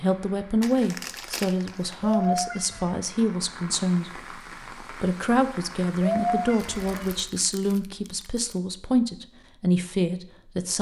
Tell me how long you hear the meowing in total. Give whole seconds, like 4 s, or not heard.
2 s.